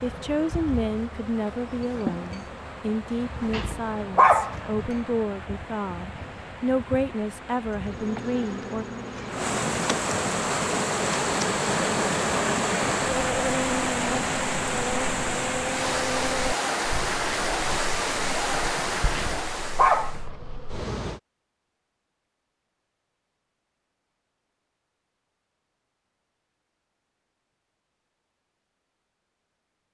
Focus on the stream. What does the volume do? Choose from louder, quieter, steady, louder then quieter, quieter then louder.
louder.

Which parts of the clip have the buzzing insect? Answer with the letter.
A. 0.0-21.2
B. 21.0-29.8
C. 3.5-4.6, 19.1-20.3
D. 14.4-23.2
A.